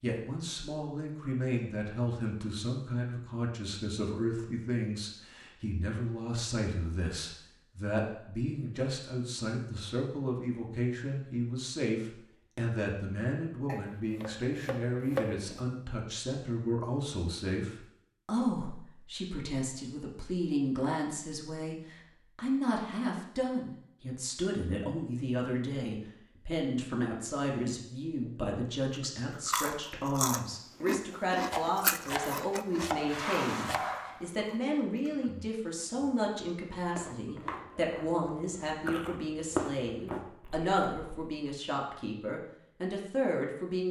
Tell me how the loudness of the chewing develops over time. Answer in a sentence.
The loudness of the chewing goes down, then up.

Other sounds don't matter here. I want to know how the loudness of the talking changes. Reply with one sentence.
The loudness of the talking stays about the same.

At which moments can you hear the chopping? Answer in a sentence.
The chopping can be heard from 13.7 to 15.6 s and from 31.5 to 34.2 s.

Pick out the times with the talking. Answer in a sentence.
The talking can be heard from 0.0 to 43.8 s.